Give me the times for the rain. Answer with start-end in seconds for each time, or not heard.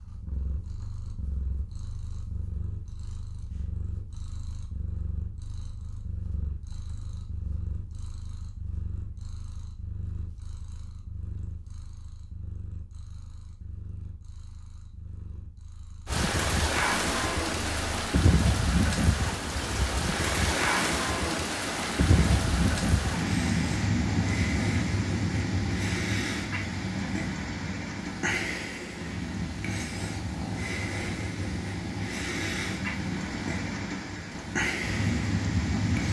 16.1-36.0.